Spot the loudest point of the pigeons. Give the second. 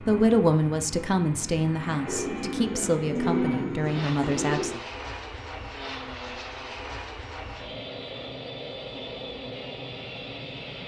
3 s.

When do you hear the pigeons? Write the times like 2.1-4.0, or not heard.
2.0-4.8.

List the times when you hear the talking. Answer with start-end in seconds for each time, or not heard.
0.0-4.8.